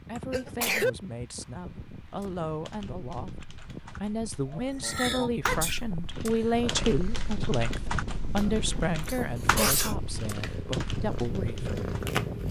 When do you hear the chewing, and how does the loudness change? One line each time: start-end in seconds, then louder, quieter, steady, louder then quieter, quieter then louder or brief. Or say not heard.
not heard.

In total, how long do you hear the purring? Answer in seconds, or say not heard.
6 s.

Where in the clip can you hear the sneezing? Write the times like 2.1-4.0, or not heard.
0.1-0.9, 4.5-5.8, 8.3-9.9.